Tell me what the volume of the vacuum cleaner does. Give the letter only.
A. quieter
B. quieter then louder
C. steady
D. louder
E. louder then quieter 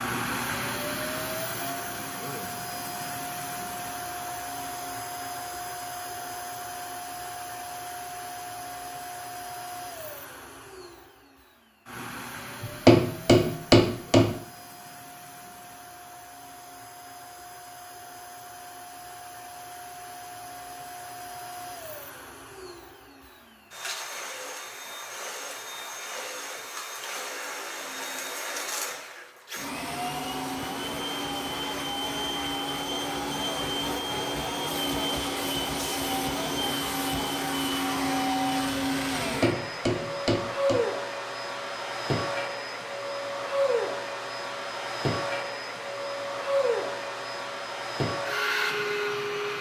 B.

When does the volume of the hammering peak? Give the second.
13 s.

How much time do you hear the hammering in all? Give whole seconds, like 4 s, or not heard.
3 s.